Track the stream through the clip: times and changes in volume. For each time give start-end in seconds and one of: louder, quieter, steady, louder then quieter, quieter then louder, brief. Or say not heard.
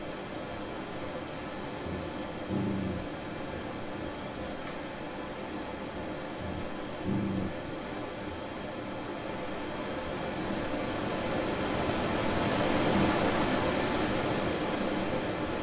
0.0-15.5 louder.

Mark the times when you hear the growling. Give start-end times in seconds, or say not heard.
1.9-3.1, 6.4-7.5, 12.2-13.1.